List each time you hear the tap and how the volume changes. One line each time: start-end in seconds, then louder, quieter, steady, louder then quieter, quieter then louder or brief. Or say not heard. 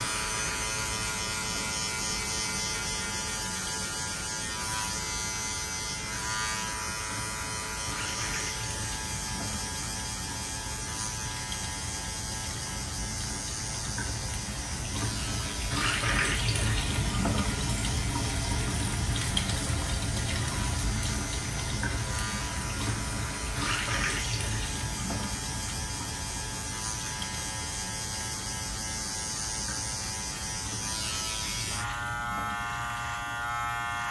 0.0-34.0 louder then quieter.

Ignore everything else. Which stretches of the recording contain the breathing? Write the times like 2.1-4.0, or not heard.
not heard.